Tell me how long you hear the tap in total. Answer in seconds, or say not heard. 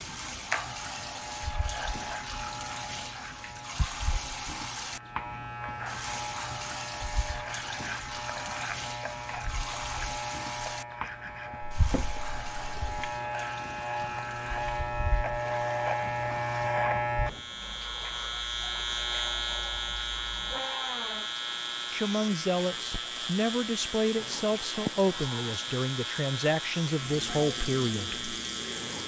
29 s.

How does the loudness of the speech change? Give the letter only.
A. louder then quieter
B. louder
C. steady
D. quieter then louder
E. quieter
C.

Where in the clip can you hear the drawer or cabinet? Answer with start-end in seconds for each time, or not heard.
11.8-13.2.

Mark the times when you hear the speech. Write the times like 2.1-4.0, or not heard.
21.9-28.2.